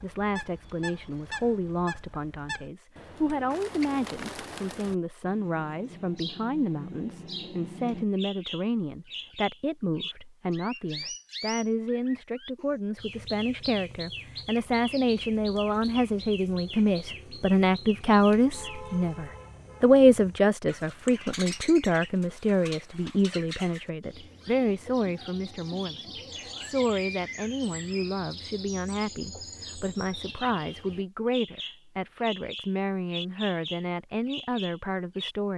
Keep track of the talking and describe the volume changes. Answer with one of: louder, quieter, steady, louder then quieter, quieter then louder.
louder then quieter.